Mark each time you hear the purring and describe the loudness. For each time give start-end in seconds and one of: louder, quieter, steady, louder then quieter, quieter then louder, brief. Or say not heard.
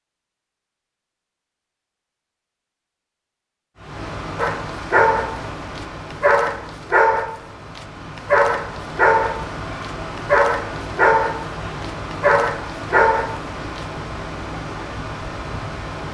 not heard.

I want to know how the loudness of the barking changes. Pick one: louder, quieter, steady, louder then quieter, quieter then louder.
steady.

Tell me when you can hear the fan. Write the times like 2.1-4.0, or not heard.
3.8-16.0.